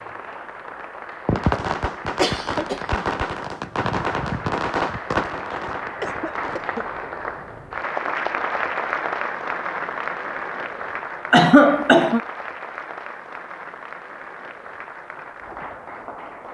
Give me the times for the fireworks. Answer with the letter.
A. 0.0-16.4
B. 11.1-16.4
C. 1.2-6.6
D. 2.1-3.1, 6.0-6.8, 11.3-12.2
C.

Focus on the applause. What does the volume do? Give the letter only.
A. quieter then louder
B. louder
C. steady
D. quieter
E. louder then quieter
E.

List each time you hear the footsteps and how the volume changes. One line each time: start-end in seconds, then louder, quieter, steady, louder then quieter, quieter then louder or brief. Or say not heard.
not heard.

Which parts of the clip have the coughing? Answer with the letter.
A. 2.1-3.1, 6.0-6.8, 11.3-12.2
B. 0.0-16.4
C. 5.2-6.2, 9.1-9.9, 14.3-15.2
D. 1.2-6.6
A.